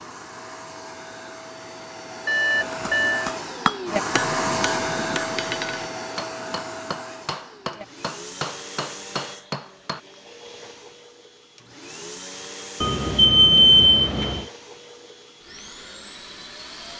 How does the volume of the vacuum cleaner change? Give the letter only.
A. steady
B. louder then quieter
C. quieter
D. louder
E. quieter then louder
B.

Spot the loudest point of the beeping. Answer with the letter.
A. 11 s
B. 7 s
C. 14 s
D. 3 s
C.